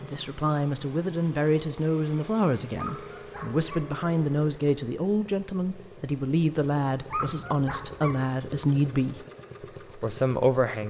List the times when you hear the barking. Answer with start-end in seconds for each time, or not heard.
2.8-3.9, 7.0-8.2.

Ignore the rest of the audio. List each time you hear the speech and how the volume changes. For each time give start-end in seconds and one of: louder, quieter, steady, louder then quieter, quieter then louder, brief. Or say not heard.
0.0-9.2 steady
9.9-10.8 brief.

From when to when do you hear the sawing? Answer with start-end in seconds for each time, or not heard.
not heard.